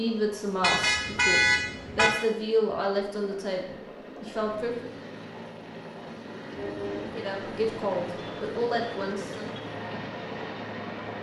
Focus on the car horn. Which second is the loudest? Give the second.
1 s.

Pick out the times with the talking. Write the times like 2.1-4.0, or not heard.
0.0-5.0, 7.1-9.5.